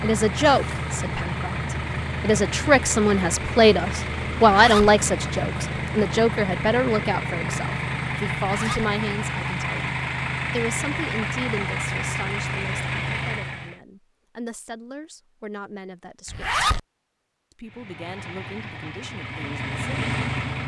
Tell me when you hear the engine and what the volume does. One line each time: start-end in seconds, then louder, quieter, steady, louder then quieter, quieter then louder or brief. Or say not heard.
0.0-13.8 steady
17.6-20.6 brief.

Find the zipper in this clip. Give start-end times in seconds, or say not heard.
4.5-4.9, 8.4-8.8, 16.2-16.8.